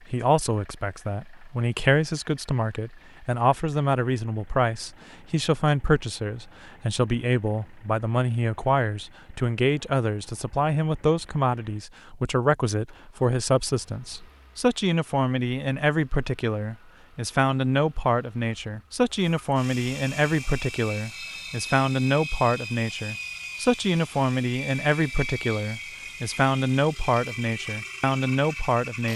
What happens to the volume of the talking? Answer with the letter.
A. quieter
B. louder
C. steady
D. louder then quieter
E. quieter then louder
C.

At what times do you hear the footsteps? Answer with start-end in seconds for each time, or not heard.
not heard.